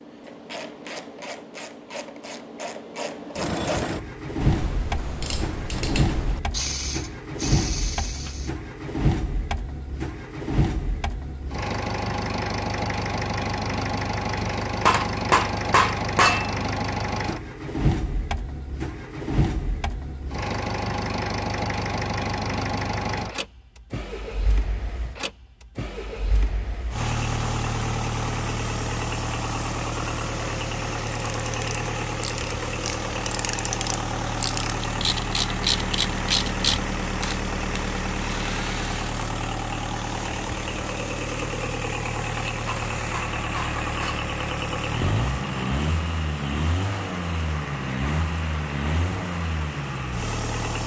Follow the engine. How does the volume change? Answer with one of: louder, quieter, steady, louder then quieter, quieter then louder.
steady.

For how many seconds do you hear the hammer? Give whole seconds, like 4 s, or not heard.
3 s.